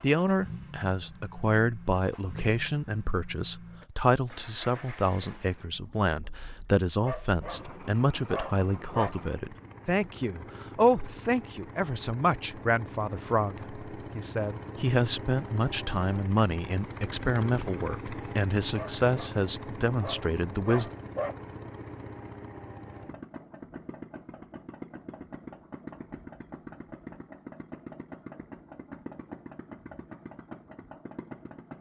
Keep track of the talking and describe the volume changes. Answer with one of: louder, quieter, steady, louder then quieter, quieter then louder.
steady.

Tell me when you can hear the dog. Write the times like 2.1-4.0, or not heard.
7.0-9.2, 18.7-21.4.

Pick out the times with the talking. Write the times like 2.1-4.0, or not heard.
0.0-20.9.